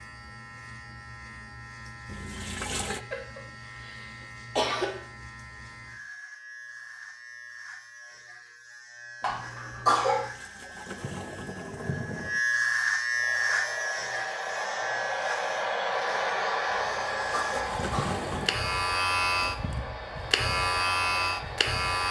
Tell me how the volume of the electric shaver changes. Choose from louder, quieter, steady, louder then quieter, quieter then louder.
louder.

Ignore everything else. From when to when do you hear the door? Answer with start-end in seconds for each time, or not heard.
not heard.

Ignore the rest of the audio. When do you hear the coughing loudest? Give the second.
10 s.